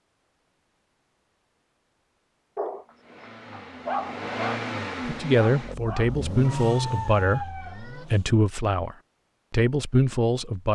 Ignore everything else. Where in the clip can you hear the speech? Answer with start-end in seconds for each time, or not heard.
5.0-10.7.